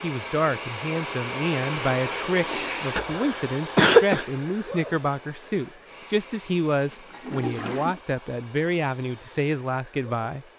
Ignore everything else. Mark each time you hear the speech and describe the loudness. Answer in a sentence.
You can hear the speech from 0.0 to 10.4 s, at a steady volume.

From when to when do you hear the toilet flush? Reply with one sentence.
The toilet flush can be heard from 2.4 to 3.0 s and from 6.9 to 8.0 s.